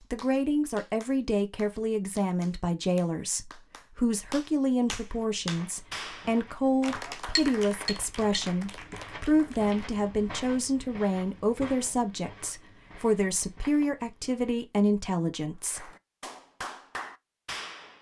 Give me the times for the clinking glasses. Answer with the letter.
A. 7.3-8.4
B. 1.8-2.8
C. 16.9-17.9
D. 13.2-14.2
A.